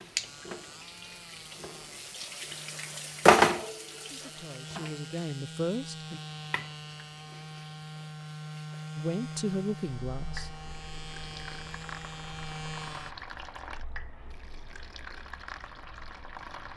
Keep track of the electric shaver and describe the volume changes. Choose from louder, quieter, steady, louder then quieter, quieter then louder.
louder.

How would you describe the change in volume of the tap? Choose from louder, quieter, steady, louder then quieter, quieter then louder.
quieter then louder.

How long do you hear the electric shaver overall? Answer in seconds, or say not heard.
13 s.